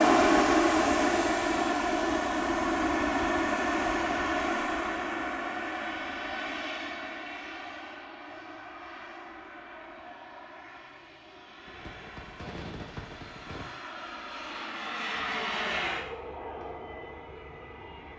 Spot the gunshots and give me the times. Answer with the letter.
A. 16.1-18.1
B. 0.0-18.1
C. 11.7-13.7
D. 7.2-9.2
C.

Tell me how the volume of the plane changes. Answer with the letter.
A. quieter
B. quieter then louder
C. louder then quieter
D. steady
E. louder
B.